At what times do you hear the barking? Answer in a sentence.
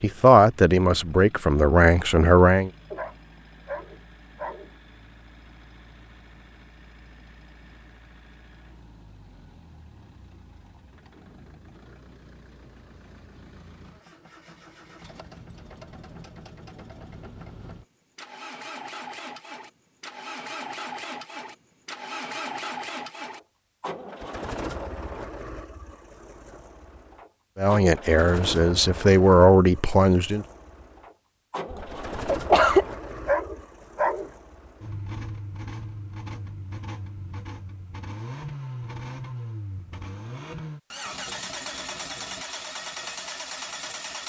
You can hear the barking from 2.9 to 4.7 s and from 32.5 to 34.3 s.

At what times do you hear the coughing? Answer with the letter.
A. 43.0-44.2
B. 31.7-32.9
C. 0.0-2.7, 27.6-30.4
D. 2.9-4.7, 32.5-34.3
B.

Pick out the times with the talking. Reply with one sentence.
You can hear the talking from 0.0 to 2.7 s and from 27.6 to 30.4 s.